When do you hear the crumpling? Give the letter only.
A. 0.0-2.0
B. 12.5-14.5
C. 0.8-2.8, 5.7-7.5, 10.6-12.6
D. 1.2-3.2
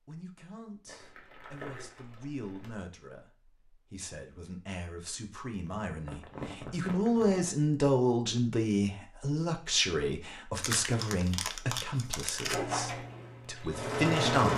C.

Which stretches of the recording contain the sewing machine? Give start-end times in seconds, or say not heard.
12.5-14.5.